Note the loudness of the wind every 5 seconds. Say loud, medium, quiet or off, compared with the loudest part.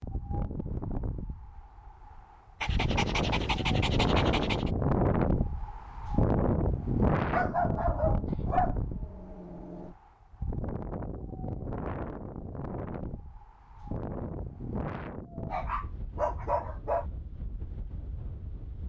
loud, loud, medium, quiet.